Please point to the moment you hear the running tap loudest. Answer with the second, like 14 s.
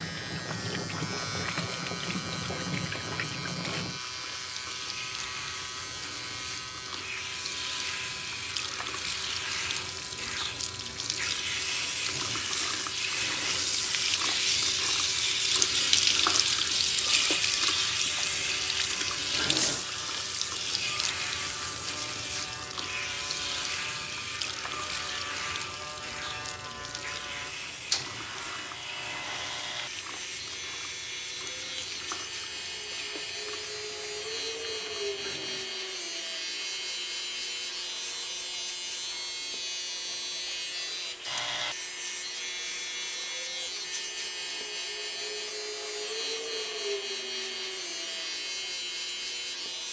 16 s.